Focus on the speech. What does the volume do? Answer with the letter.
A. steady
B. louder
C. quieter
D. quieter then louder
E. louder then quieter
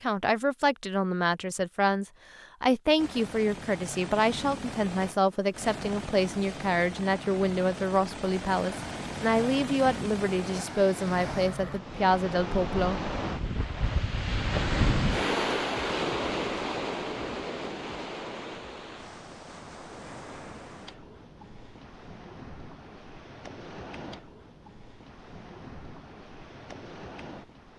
A.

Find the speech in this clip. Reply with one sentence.
You can hear the speech from 0.0 to 13.0 s.